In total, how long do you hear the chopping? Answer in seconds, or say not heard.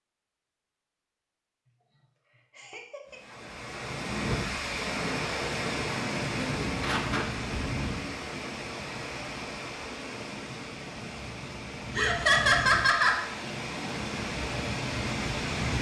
not heard.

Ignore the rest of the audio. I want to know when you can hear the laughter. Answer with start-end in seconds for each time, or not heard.
2.5-3.2, 6.2-7.2, 11.9-13.2.